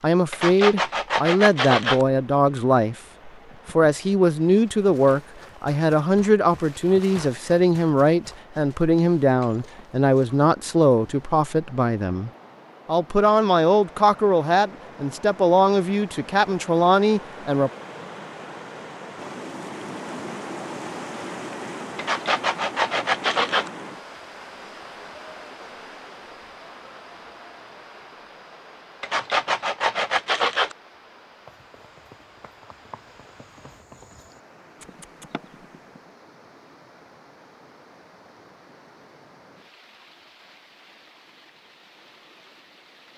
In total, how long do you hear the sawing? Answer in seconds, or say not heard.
5 s.